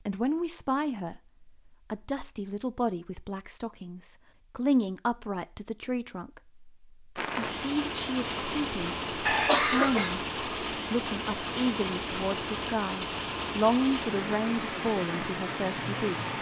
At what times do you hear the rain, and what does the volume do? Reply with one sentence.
The rain can be heard from 7.2 to 16.3 s, at a steady volume.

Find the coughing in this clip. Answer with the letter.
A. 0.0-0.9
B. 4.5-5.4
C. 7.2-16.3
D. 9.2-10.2
D.